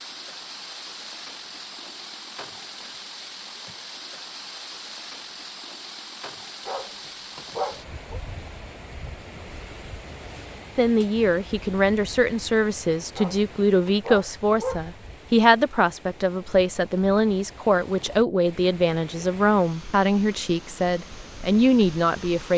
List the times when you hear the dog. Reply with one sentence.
You can hear the dog from 6.7 to 8.2 s and from 13.2 to 14.8 s.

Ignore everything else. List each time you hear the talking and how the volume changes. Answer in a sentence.
You can hear the talking from 10.8 to 22.5 s, at a steady volume.